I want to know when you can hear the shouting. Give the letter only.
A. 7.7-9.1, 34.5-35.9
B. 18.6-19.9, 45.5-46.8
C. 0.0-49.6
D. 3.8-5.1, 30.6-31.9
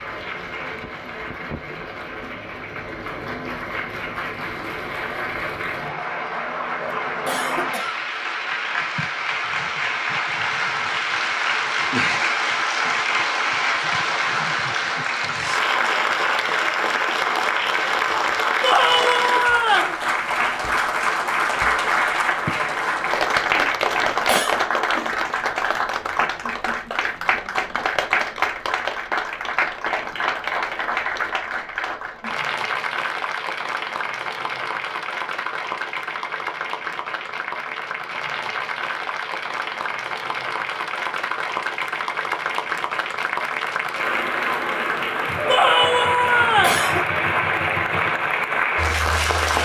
B.